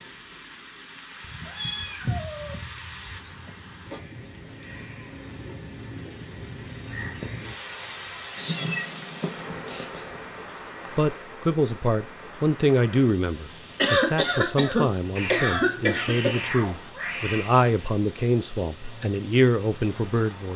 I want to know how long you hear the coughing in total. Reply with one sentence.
The coughing can be heard for 4 seconds in total.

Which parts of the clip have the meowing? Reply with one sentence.
You can hear the meowing from 1.2 to 3.5 s, from 8.3 to 9.7 s and from 15.2 to 17.6 s.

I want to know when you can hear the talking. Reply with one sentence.
You can hear the talking from 10.9 to 20.5 s.